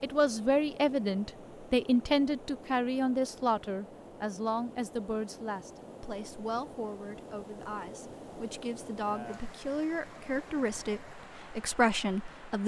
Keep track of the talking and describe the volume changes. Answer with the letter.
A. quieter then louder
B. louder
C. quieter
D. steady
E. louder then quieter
A.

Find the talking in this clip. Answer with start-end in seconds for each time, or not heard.
0.0-12.6.